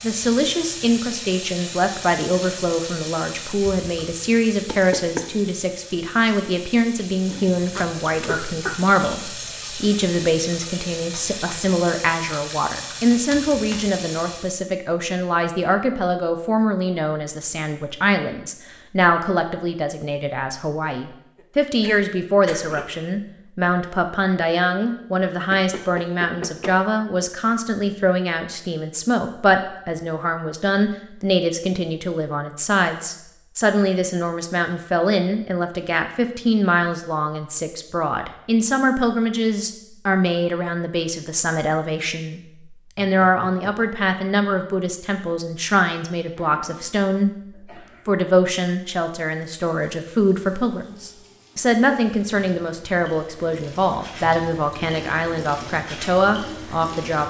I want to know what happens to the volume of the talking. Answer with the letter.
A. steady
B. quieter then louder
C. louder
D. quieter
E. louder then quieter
A.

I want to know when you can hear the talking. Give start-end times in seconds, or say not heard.
0.0-47.4, 48.0-57.2.